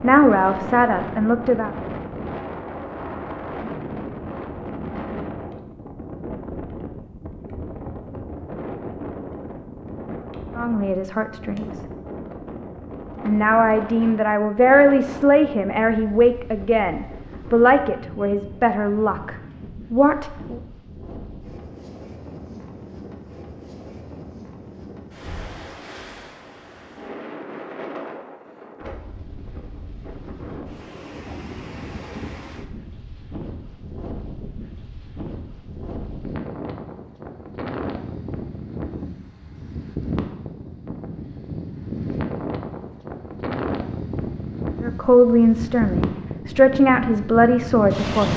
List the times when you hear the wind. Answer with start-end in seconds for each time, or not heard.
0.0-48.3.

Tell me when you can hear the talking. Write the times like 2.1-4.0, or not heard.
0.0-1.7, 10.6-11.8, 13.2-20.6, 44.8-48.3.